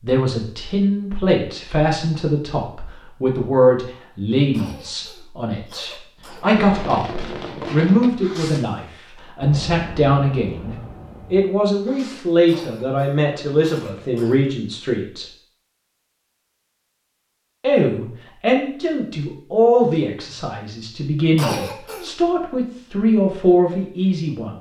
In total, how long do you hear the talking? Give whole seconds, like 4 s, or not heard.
22 s.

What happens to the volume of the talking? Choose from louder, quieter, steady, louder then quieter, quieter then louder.
steady.